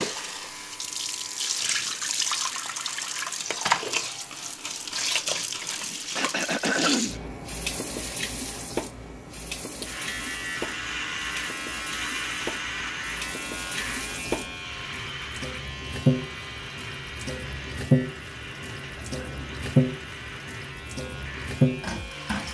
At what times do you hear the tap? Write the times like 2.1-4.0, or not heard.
0.0-22.4.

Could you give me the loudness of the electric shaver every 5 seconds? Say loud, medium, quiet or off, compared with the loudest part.
quiet, quiet, loud, medium, medium.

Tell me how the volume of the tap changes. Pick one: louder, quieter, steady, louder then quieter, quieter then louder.
quieter then louder.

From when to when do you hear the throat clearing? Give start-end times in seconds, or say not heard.
6.2-7.2, 18.6-19.6.